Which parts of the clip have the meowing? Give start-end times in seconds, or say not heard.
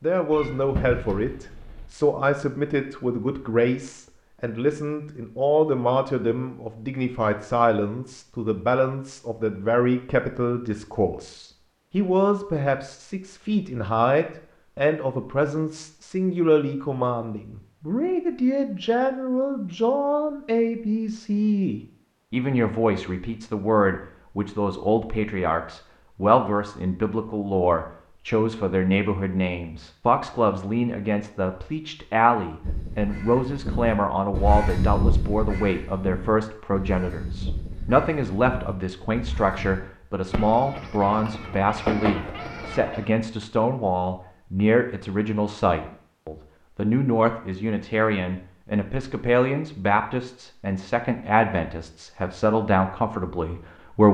0.3-1.9, 40.3-43.0.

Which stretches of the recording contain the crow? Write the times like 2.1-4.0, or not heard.
32.6-39.8.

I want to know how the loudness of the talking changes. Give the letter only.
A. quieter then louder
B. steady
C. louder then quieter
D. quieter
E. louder
B.